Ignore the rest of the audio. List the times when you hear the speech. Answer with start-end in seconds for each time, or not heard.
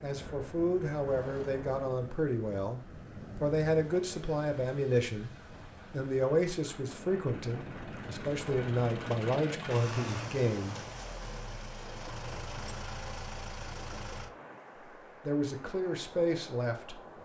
0.0-5.3, 5.9-10.8, 15.1-17.0.